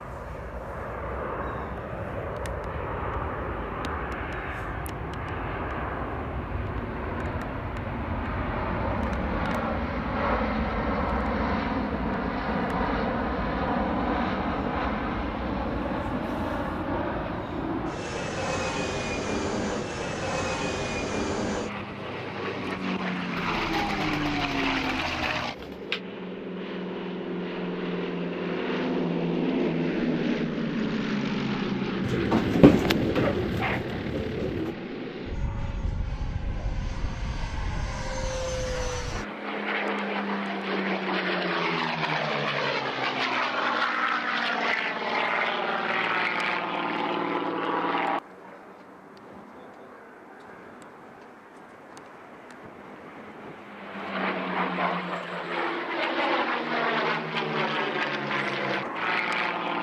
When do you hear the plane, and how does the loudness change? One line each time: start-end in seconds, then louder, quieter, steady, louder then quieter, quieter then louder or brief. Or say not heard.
0.0-59.7 steady.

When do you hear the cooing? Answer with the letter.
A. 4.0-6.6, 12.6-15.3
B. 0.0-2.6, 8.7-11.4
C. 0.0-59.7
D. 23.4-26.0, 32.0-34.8
D.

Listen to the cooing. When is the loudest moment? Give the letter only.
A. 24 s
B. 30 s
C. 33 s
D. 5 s
C.